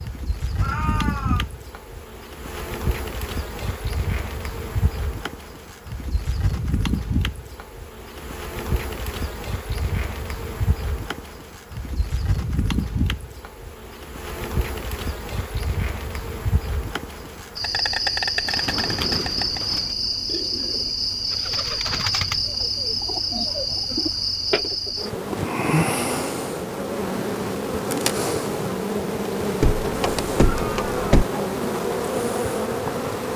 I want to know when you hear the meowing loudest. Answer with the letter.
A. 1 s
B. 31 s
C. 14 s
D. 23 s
A.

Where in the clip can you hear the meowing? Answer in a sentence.
You can hear the meowing from 0.6 to 1.4 s and from 30.4 to 31.1 s.